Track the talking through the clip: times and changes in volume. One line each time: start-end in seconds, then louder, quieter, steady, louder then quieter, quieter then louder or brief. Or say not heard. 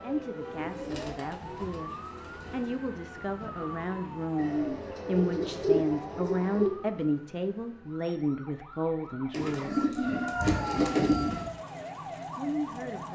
0.0-10.0 louder
12.3-13.0 brief.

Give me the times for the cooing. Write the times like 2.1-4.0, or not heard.
0.6-2.8, 4.3-6.8, 9.3-11.5.